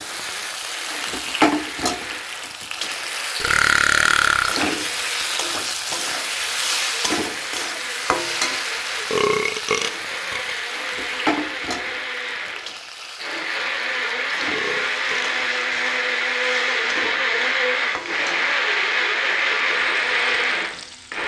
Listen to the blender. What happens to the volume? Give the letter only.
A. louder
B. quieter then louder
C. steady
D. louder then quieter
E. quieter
A.